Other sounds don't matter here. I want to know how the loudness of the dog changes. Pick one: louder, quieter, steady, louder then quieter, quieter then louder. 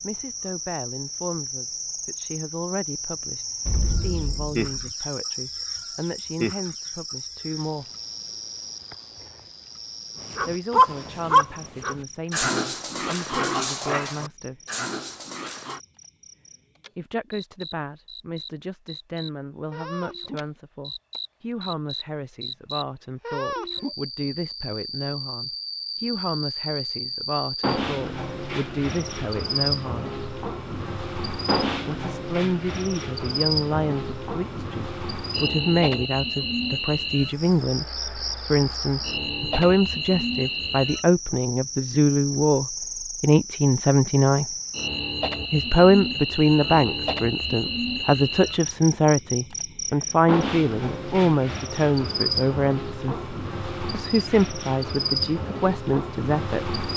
quieter.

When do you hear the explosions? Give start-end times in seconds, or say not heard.
3.6-5.0.